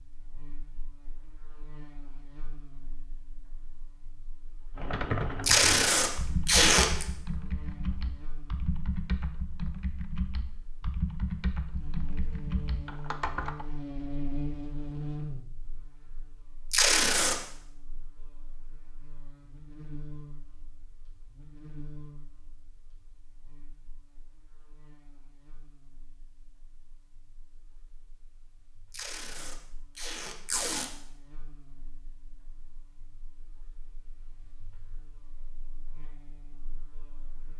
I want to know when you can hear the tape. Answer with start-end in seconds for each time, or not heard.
5.4-7.0, 16.7-17.4, 28.9-30.9.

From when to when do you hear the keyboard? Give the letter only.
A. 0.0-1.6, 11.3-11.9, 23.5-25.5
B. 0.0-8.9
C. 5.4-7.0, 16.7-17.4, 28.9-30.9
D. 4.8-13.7
D.